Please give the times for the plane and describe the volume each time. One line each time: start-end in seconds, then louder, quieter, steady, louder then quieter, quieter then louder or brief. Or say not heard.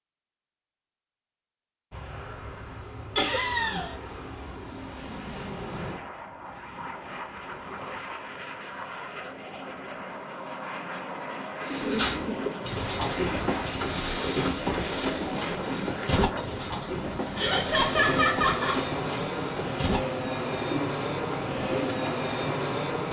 1.9-23.0 louder.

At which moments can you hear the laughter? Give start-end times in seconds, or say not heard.
3.1-4.0, 17.4-18.8.